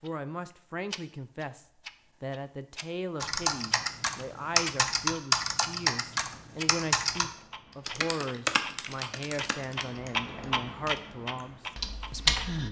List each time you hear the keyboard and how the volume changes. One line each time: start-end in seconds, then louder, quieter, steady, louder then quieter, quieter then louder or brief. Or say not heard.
3.2-12.6 quieter.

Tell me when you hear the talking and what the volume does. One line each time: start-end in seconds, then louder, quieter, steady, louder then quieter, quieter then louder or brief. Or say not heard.
0.0-12.6 steady.